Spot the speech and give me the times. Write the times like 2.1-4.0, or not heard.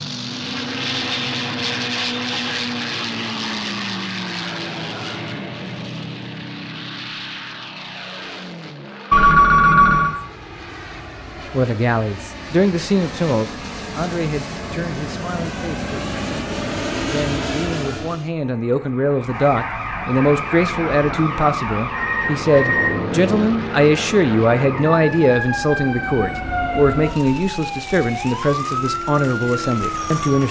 11.5-30.4.